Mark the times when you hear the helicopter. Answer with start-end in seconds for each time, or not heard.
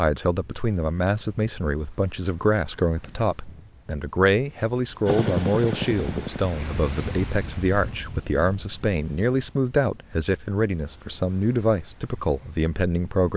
5.0-6.6.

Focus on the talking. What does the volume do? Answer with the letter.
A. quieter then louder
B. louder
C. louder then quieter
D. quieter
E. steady
E.